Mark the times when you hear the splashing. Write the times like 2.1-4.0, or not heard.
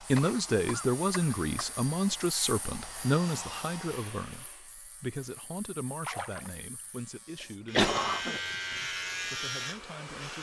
6.0-6.8.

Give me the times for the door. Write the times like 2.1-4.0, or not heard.
not heard.